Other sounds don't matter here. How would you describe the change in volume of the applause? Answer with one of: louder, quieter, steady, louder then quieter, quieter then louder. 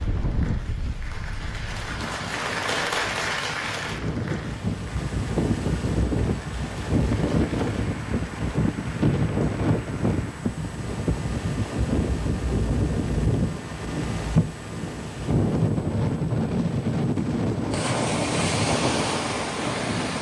louder then quieter.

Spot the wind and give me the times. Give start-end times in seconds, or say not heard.
0.0-20.1.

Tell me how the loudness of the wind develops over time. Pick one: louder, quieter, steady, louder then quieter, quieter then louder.
louder.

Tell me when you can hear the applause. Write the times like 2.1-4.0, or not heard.
0.0-10.6.